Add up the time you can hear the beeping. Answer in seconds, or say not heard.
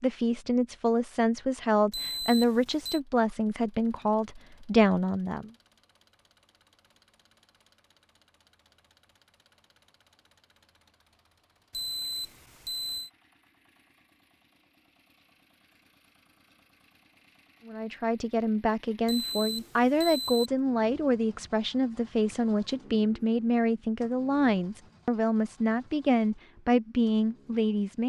4 s.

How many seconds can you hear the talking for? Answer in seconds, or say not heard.
16 s.